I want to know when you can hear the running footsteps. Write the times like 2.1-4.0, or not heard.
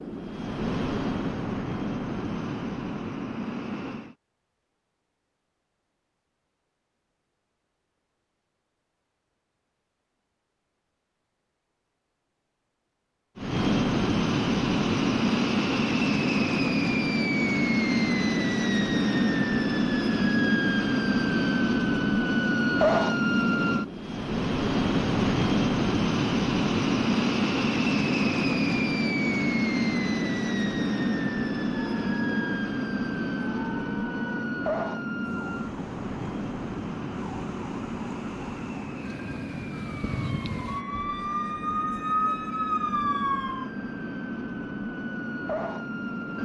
not heard.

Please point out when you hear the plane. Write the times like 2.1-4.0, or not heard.
0.0-4.2, 13.3-46.4.